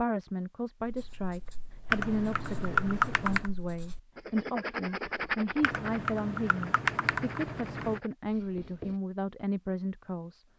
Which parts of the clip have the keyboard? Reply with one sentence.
You can hear the keyboard from 1.9 to 3.5 s and from 5.6 to 8.0 s.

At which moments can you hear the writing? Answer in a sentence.
You can hear the writing from 0.8 to 9.0 s.